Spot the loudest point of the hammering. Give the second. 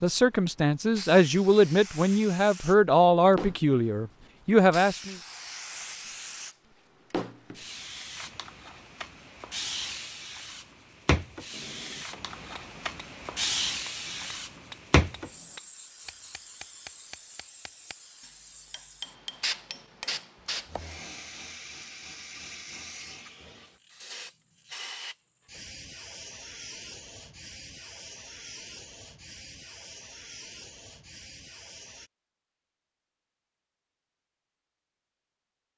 19 s.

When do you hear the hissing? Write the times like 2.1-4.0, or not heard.
0.1-32.1.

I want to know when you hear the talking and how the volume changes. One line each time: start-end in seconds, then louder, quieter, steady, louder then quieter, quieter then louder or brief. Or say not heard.
0.0-5.2 steady.